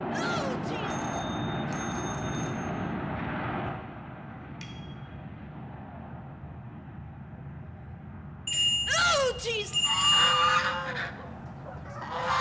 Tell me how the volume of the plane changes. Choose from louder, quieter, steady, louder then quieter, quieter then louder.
quieter.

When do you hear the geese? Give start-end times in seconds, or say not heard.
9.7-12.3.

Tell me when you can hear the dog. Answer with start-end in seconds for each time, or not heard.
not heard.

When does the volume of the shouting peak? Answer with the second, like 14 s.
9 s.